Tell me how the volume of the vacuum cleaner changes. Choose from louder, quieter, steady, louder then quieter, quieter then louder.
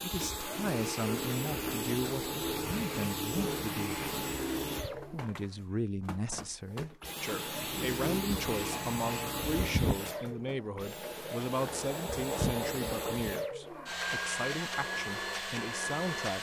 steady.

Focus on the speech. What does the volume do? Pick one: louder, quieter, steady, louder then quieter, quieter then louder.
steady.